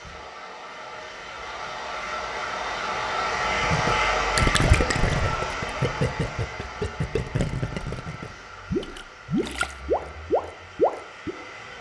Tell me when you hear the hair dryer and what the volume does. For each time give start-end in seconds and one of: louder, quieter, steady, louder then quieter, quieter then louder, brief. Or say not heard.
0.0-11.7 louder then quieter.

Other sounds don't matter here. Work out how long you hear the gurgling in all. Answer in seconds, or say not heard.
8 s.